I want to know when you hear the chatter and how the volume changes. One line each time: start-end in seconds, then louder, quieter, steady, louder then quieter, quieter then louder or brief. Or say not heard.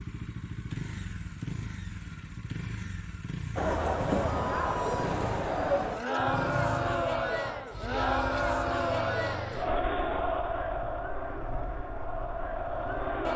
3.5-13.3 quieter.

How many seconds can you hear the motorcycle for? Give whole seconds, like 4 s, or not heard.
13 s.